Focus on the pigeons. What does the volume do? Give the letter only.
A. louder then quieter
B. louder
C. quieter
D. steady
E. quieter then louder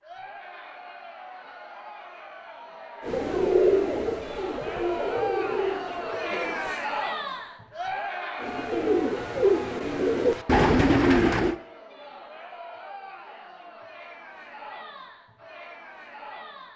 E.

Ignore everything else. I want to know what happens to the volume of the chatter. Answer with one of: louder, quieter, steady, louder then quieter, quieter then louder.
louder then quieter.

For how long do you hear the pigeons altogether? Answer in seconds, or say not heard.
7 s.